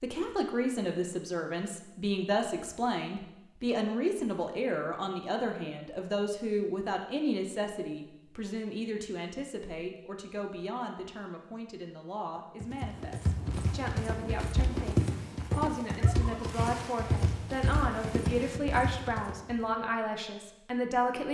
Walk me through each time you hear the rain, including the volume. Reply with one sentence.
The rain can't be heard in this clip.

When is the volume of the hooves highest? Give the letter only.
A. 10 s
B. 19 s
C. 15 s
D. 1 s
C.